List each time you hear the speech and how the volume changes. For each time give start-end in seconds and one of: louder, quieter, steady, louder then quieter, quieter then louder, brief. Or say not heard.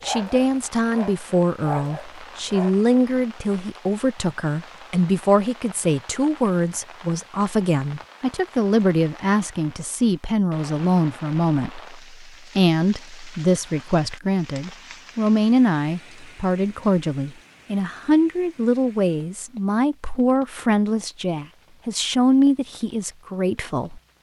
0.1-24.0 steady.